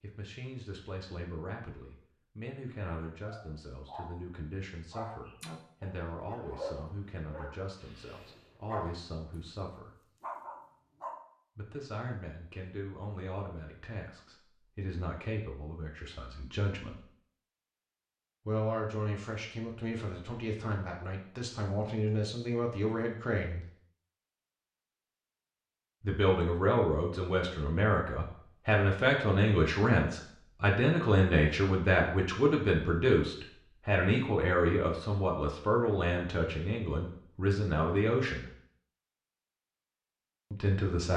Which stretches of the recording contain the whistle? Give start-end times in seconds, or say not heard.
not heard.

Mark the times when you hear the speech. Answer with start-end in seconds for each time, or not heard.
0.0-9.9, 11.6-17.0, 18.4-23.6, 26.0-38.5, 40.5-41.1.